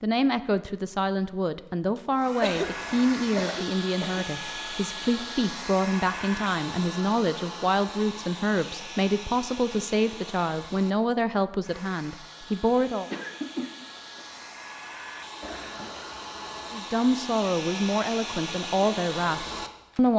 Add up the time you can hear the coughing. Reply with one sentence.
The coughing can be heard for 3 seconds in total.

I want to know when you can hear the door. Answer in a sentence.
You can't hear the door here.